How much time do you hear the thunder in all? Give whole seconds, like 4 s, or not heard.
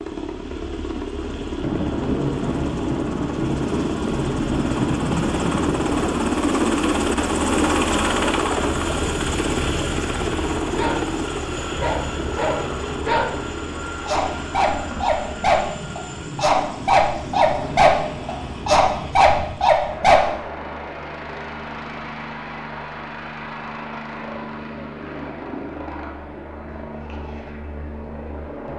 7 s.